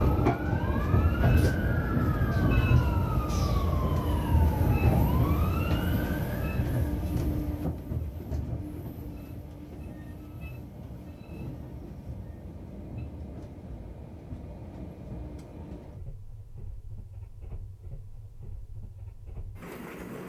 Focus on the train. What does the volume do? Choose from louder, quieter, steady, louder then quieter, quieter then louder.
quieter.